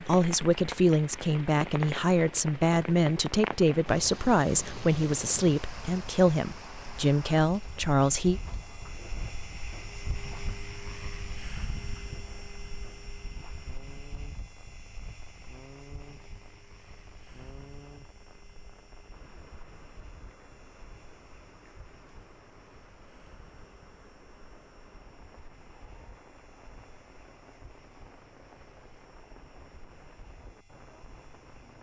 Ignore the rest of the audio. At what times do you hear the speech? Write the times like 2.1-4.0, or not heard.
0.0-8.4.